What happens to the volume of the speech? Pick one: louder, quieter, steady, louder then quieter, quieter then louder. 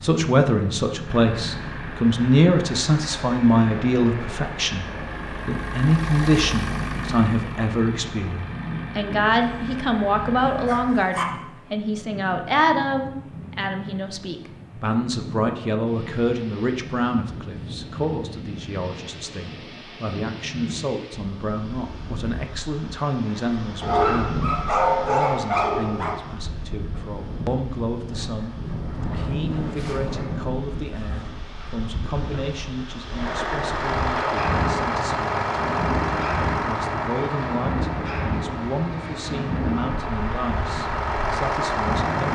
quieter.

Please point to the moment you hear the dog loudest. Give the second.
25 s.